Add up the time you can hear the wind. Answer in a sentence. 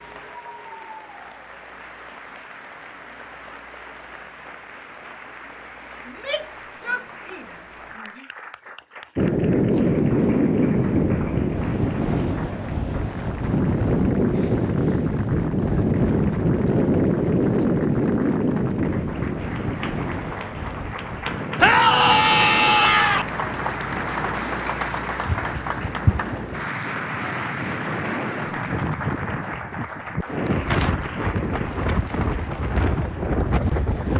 You can hear the wind for 25 seconds altogether.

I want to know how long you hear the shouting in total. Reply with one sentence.
You can hear the shouting for 4 seconds altogether.